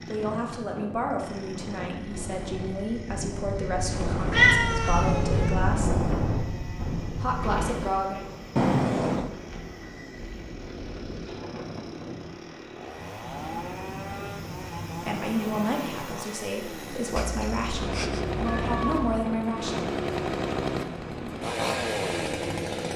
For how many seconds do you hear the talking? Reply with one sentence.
The talking can be heard for 12 seconds in total.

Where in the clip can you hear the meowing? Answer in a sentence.
You can hear the meowing from 3.9 to 5.5 s, from 8.6 to 9.3 s and from 17.1 to 19.1 s.